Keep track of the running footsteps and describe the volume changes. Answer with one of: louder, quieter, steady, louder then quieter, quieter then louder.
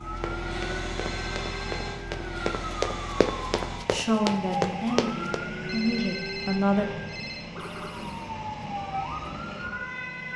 louder.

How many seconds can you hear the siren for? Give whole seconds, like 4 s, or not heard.
10 s.